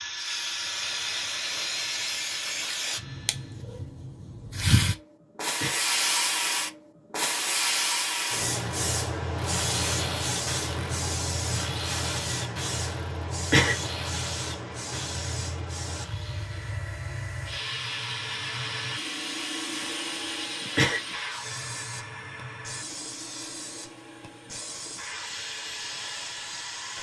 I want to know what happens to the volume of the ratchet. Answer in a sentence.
The volume of the ratchet goes down.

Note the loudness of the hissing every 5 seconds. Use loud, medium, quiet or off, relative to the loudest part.
loud, loud, medium, medium, medium, medium.